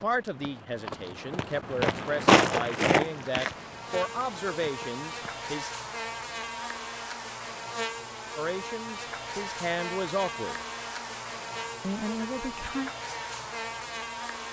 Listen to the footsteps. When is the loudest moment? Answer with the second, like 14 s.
2 s.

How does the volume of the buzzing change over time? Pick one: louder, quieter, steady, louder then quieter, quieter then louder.
steady.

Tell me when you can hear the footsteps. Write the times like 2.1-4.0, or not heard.
0.0-5.4.